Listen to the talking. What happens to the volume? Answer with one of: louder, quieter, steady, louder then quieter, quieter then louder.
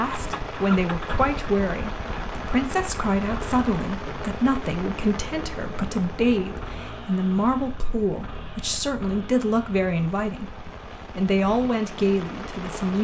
steady.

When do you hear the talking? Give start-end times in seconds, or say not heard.
0.0-12.9.